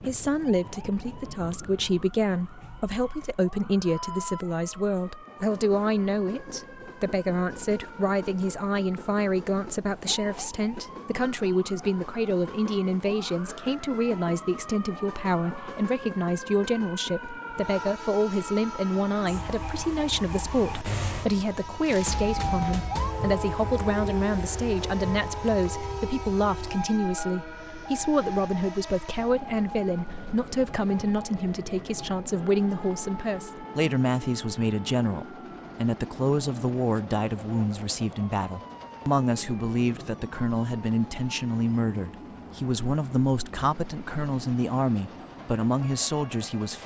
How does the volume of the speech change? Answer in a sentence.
The volume of the speech stays about the same.